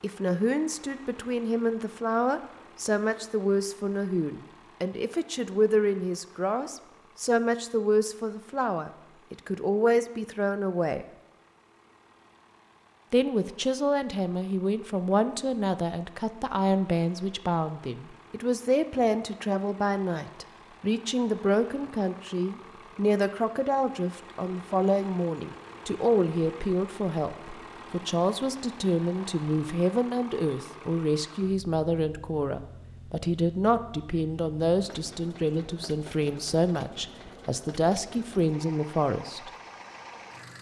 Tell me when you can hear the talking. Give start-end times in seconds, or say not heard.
0.0-11.1, 13.1-39.5.